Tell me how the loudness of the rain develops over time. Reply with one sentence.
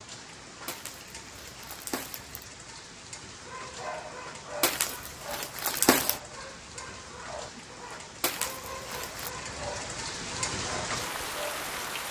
The loudness of the rain goes up.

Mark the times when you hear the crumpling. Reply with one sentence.
The crumpling can be heard from 0.7 to 2.4 s, from 4.6 to 6.2 s and from 8.2 to 9.3 s.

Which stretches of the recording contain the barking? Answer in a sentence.
The barking can be heard from 3.5 to 12.0 s.